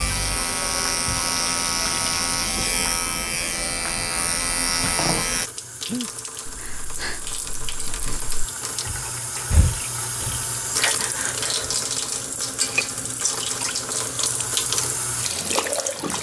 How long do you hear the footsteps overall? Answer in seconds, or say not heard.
not heard.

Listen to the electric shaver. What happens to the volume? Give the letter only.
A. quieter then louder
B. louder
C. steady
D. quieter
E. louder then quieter
C.